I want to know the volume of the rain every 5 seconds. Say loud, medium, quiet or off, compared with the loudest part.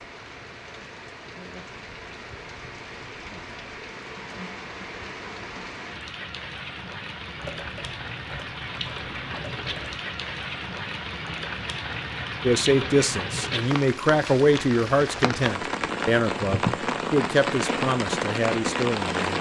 quiet, medium, medium, loud.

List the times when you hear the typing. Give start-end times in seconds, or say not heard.
7.3-10.0.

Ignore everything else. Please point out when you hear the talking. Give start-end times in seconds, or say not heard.
12.4-19.3.